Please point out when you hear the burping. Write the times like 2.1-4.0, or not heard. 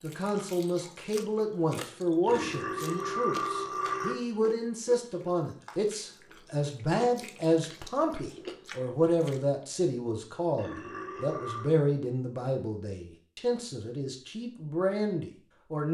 2.2-4.2, 10.6-11.7.